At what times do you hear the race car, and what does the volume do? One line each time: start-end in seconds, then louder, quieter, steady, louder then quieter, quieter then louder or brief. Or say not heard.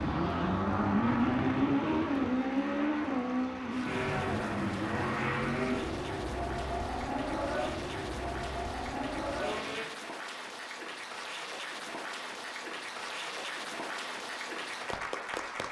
0.0-9.8 quieter.